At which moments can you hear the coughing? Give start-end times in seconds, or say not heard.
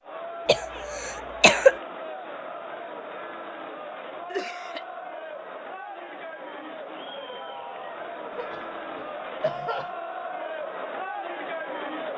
0.5-1.8, 4.3-4.8, 8.3-9.9.